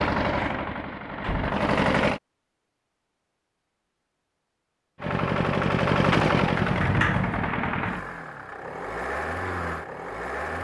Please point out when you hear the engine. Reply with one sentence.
The engine can be heard from 0.0 to 2.2 s and from 5.0 to 10.5 s.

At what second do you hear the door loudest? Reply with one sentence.
The loudest moment of the door is at 7 seconds.